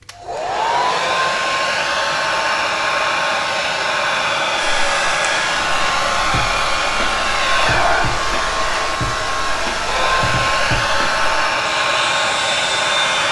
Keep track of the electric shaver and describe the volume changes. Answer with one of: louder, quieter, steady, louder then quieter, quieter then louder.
steady.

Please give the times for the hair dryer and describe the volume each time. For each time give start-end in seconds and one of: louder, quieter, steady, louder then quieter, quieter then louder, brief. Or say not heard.
0.1-13.2 steady.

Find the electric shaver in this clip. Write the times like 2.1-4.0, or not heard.
4.5-13.2.